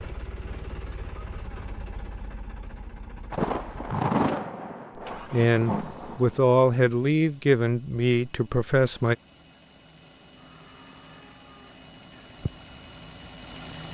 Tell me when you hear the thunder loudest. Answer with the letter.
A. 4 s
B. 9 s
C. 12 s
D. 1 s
A.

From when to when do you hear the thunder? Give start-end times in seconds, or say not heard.
3.3-6.4.